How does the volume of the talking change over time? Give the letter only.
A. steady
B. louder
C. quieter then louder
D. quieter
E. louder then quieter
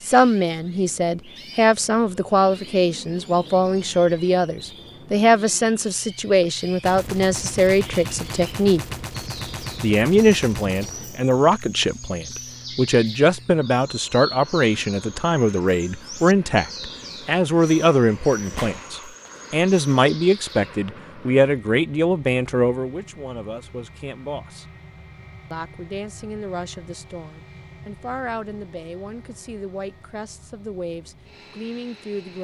D.